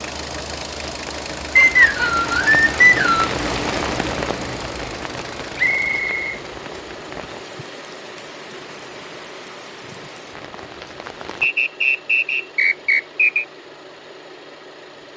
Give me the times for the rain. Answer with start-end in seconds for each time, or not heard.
0.0-11.5.